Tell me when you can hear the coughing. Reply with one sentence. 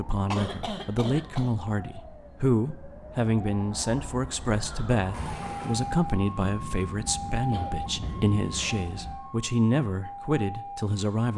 The coughing can be heard from 0.3 to 1.5 s and from 7.5 to 8.8 s.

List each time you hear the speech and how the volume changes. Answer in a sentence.
You can hear the speech from 0.0 to 11.3 s, at a steady volume.